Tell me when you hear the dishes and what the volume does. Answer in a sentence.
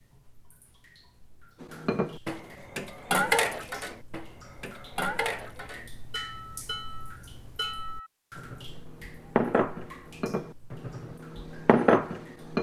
You can hear the dishes from 1.6 to 12.5 s, getting quieter then louder.